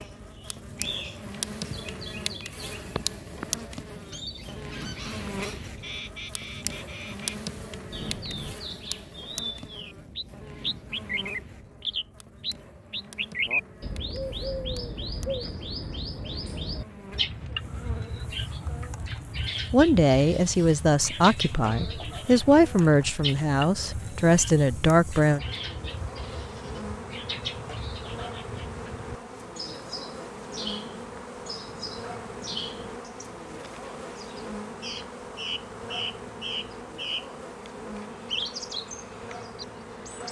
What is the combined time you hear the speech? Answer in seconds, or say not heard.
6 s.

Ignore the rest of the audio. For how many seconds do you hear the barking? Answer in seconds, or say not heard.
not heard.